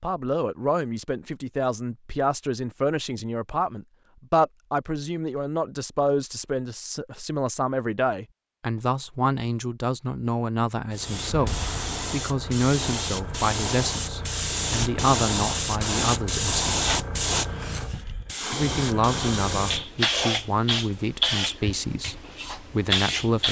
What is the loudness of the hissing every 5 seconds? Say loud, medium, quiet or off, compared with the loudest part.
off, off, loud, loud, loud.